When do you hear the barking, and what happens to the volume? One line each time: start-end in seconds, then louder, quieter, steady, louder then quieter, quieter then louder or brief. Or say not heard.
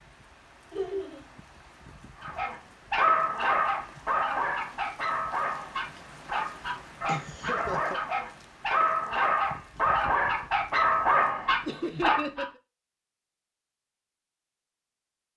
2.2-12.4 quieter then louder.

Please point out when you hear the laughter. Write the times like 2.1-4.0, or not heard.
0.7-1.2, 7.0-8.0, 11.7-12.6.